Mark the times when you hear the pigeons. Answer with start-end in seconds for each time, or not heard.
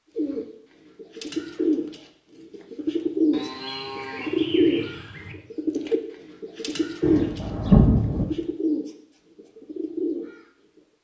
0.1-10.4.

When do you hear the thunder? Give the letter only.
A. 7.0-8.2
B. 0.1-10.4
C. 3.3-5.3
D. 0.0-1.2
A.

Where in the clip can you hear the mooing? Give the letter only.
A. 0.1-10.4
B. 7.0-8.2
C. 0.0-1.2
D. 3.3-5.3
D.